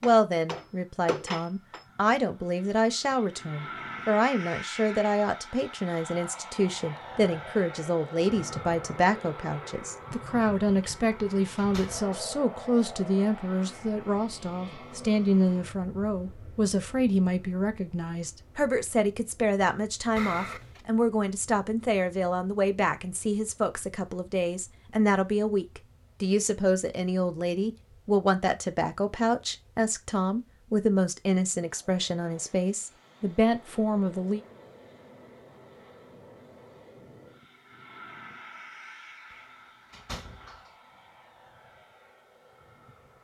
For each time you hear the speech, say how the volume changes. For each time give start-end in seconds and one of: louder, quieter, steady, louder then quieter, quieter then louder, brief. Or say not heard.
0.0-34.4 steady.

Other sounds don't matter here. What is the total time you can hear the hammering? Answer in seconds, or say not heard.
2 s.